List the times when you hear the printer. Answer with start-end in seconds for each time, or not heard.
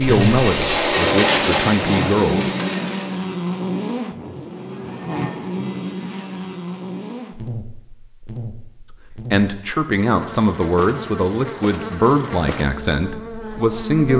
0.0-3.2.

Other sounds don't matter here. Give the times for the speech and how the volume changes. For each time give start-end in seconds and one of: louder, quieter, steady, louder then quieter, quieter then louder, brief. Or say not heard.
0.0-2.5 brief
9.3-14.1 steady.